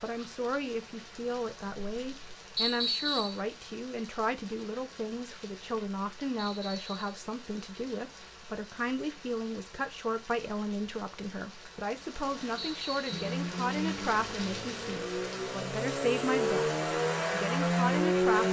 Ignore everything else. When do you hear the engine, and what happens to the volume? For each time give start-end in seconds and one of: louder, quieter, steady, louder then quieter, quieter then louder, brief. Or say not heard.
13.1-18.4 louder.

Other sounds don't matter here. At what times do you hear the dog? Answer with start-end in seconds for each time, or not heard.
not heard.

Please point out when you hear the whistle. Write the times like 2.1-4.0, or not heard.
2.5-3.4, 6.3-7.2, 12.6-13.2.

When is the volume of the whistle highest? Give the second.
3 s.